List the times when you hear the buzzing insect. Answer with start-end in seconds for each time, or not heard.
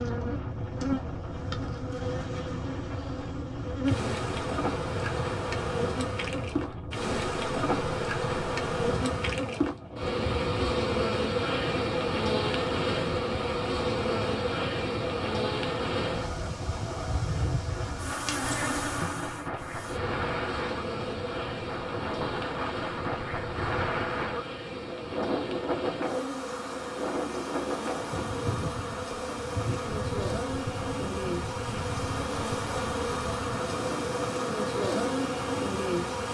0.0-36.2.